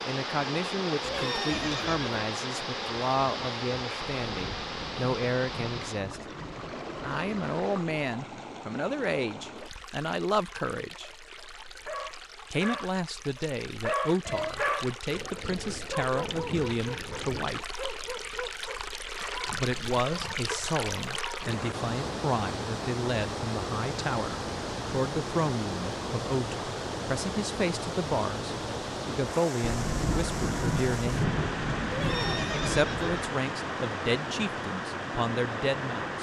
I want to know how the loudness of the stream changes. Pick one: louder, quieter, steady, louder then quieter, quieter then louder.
quieter then louder.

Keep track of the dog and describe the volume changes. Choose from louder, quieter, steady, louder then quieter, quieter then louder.
quieter.